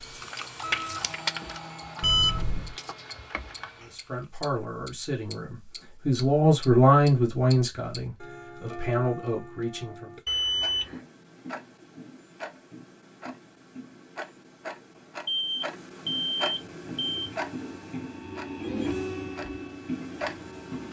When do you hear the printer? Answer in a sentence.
The printer can be heard from 0.0 to 4.2 s and from 16.6 to 20.8 s.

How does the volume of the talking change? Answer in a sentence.
The loudness of the talking goes up, then down.